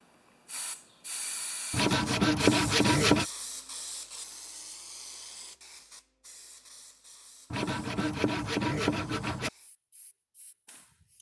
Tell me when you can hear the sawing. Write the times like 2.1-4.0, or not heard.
1.7-3.2, 7.5-9.5.